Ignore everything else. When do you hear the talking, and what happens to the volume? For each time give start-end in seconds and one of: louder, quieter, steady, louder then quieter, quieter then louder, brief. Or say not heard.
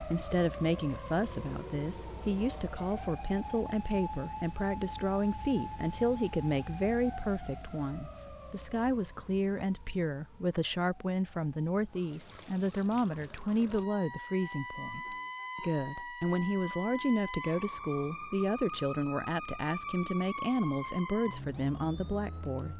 0.0-22.7 steady.